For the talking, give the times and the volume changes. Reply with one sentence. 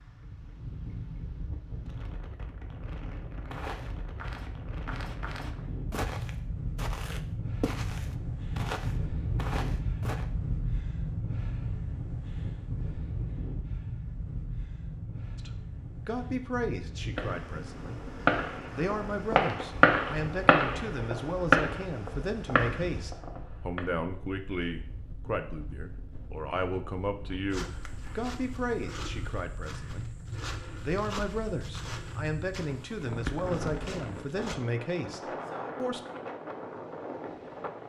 The talking can be heard from 15.3 to 36.0 s, at a steady volume.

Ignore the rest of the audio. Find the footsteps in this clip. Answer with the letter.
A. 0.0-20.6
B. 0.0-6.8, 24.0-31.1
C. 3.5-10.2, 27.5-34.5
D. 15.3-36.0
C.